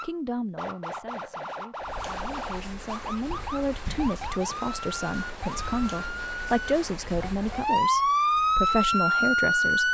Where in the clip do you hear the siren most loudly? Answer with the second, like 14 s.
8 s.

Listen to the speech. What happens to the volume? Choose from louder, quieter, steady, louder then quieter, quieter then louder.
louder.